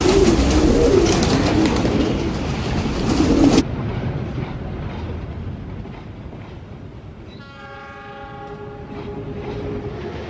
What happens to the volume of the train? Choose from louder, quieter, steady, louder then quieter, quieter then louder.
quieter then louder.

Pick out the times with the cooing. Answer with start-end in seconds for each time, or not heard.
0.0-3.6.